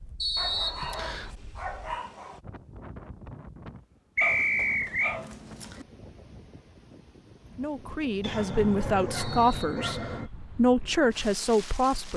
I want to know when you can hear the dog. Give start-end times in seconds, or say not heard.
0.3-2.4, 4.2-5.8, 8.2-10.3.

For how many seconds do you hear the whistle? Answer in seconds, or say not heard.
3 s.